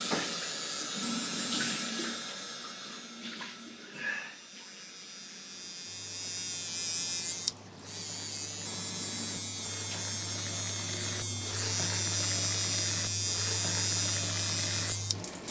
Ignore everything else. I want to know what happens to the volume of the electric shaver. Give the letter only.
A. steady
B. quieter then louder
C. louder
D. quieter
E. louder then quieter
B.